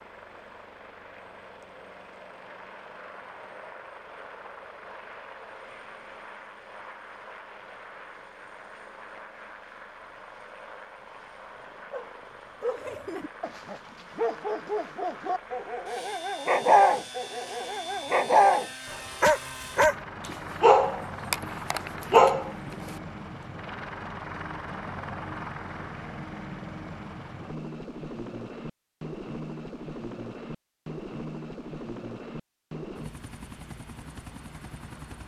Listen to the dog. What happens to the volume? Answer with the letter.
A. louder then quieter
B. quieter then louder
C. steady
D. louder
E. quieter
D.